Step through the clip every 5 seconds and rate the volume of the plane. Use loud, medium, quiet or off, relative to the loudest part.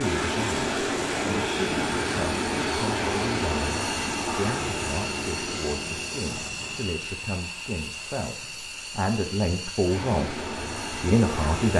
loud, medium, medium.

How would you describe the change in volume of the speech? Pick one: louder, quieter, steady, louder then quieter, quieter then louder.
louder.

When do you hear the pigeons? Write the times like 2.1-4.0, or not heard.
not heard.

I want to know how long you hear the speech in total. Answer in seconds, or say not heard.
12 s.